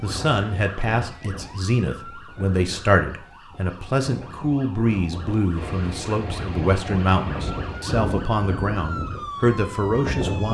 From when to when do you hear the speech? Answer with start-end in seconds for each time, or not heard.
0.0-10.4.